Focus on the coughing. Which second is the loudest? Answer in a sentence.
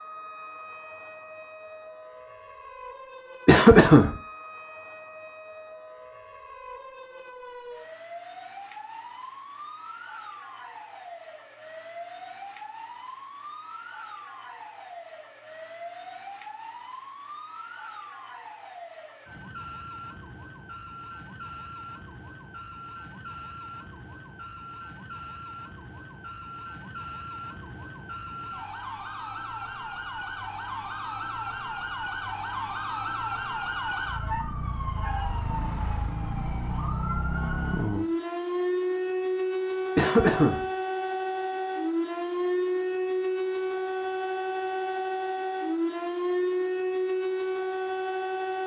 The volume of the coughing peaks at 4 seconds.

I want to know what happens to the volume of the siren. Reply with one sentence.
The volume of the siren goes up.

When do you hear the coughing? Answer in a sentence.
The coughing can be heard from 3.5 to 4.2 s and from 40.0 to 40.6 s.